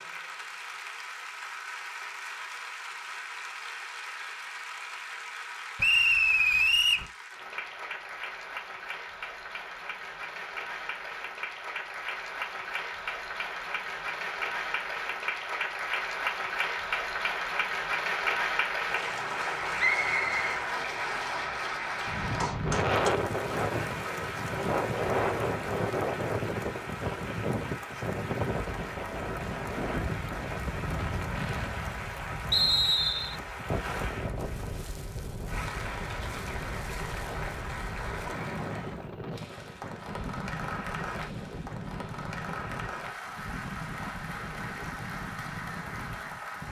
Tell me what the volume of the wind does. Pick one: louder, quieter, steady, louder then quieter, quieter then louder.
quieter.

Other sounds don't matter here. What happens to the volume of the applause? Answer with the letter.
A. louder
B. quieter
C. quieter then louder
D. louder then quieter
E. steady
D.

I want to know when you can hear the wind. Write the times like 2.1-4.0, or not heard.
22.1-46.6.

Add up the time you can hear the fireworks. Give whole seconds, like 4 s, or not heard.
not heard.